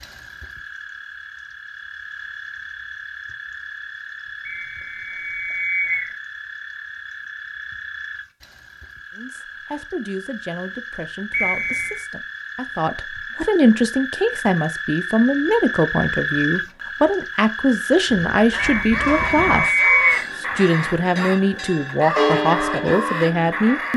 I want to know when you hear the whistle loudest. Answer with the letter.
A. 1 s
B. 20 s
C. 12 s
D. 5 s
B.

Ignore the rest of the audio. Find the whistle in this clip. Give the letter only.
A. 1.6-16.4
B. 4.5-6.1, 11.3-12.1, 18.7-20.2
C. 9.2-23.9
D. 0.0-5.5
B.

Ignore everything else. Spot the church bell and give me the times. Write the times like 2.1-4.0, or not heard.
18.1-23.6.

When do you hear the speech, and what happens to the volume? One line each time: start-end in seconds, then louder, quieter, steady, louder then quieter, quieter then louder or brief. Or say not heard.
9.2-23.9 louder.